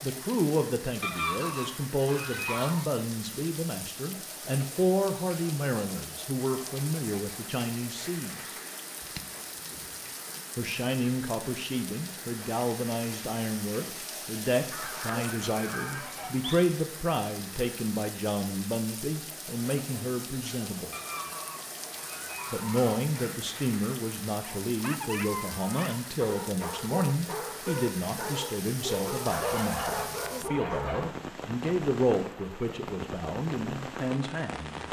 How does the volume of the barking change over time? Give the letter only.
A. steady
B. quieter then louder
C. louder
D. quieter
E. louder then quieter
A.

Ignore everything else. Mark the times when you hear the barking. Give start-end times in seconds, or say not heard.
24.4-31.0.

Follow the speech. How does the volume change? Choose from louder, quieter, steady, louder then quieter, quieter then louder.
steady.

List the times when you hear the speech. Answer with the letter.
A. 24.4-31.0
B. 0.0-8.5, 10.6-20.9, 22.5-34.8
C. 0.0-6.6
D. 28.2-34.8
B.